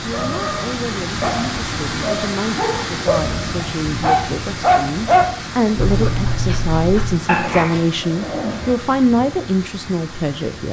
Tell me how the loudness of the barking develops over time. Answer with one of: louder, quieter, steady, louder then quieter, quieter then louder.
louder then quieter.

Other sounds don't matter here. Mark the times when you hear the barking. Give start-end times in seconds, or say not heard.
0.1-8.8.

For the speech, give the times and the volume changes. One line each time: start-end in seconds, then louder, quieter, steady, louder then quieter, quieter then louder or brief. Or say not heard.
0.0-10.6 louder.